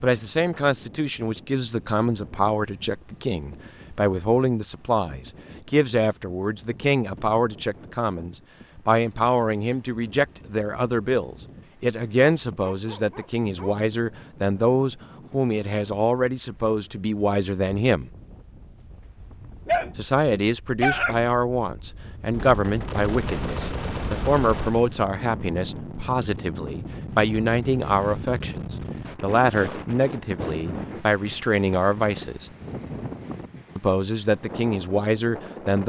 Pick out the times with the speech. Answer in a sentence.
You can hear the speech from 0.0 to 18.1 s, from 19.9 to 32.5 s and from 33.8 to 35.8 s.